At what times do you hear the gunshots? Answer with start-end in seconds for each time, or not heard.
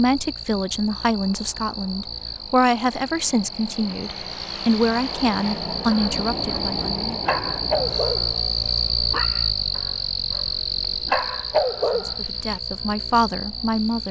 not heard.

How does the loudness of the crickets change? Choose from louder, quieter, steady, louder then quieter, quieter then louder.
louder then quieter.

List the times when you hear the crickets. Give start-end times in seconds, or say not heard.
0.0-14.0.